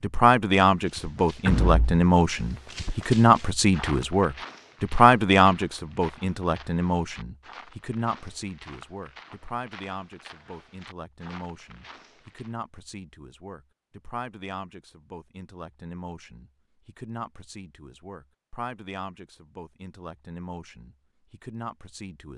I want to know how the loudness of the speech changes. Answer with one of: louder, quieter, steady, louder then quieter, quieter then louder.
quieter.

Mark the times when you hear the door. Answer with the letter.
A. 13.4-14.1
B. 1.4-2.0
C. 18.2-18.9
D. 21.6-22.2
B.